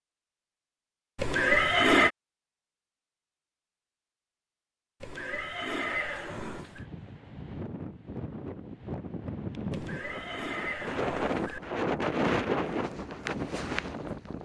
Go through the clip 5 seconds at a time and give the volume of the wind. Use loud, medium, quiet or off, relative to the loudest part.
off, medium, loud.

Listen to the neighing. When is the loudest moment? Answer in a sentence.
The volume of the neighing peaks at 2 seconds.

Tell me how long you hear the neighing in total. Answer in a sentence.
You can hear the neighing for 5 seconds altogether.